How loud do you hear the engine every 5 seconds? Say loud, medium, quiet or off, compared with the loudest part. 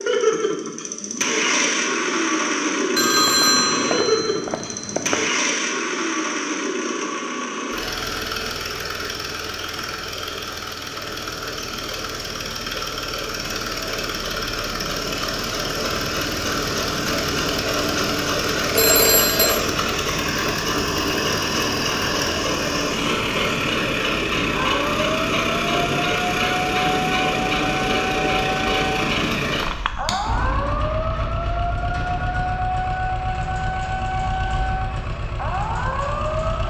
loud, loud, medium, loud, loud, loud, medium, medium.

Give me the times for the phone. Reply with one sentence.
The phone can be heard from 3.0 to 5.2 s, from 18.8 to 19.6 s and from 29.5 to 30.1 s.